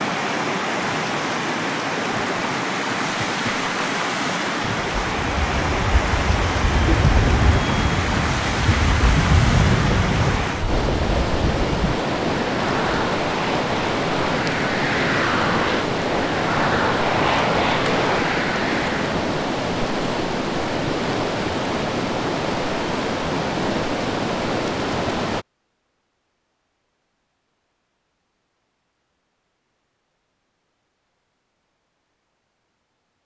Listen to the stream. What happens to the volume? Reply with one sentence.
The volume of the stream stays about the same.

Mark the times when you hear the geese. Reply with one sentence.
The geese can be heard from 8.8 to 10.3 s.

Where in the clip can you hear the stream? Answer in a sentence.
The stream can be heard from 0.0 to 25.4 s.